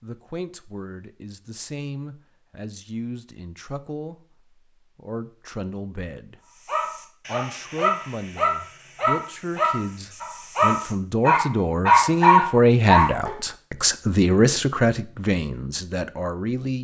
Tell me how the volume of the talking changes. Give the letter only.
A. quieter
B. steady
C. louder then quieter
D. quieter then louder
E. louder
E.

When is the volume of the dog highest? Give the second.
12 s.